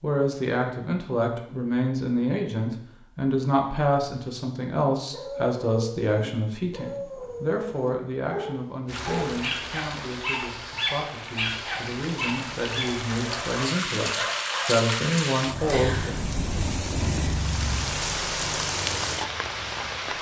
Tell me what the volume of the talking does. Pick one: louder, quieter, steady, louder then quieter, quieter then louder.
quieter then louder.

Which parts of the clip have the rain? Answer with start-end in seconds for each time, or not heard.
8.8-20.1.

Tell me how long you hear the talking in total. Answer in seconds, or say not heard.
16 s.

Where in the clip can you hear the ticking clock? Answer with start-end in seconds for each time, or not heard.
not heard.